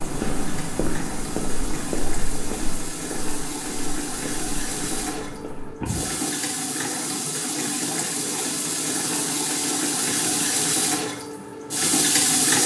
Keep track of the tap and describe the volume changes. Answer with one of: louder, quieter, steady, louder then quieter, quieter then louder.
louder.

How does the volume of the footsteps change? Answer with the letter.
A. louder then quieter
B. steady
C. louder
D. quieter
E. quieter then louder
D.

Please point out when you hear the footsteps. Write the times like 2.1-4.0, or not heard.
0.0-6.1.